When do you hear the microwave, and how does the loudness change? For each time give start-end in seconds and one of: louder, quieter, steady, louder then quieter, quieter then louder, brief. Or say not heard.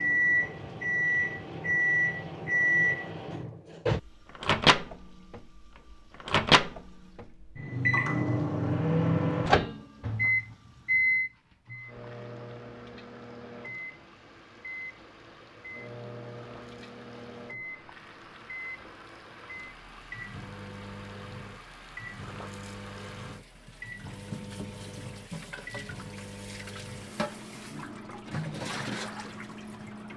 0.0-30.1 quieter.